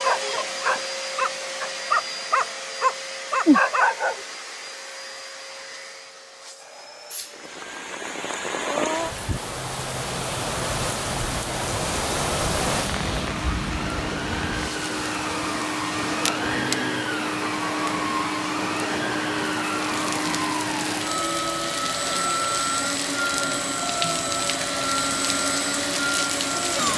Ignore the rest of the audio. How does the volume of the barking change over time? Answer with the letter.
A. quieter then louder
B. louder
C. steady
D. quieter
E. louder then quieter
B.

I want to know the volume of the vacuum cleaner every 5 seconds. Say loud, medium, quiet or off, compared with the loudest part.
medium, quiet, medium, loud, loud, loud.